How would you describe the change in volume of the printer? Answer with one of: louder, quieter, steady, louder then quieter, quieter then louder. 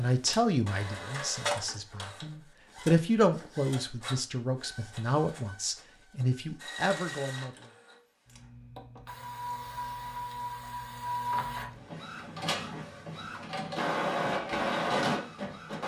quieter then louder.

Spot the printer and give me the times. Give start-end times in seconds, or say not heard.
0.1-15.8.